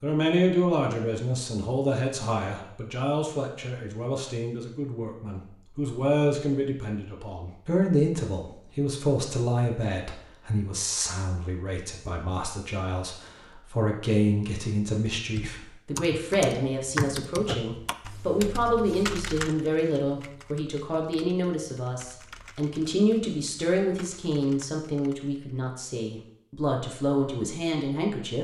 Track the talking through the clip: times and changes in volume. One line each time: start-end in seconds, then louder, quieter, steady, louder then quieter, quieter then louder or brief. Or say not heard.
0.0-28.4 steady.